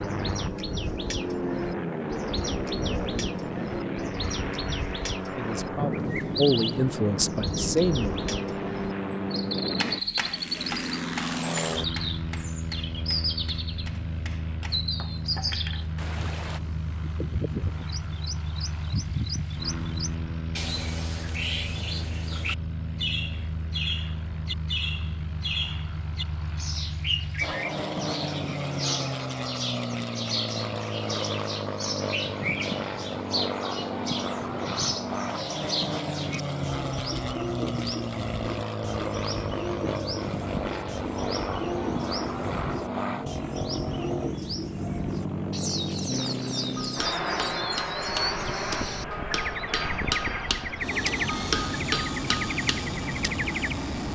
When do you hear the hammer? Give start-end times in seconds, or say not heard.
9.8-16.6, 46.8-53.4.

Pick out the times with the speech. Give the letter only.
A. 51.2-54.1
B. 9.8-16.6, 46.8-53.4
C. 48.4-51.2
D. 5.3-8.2
D.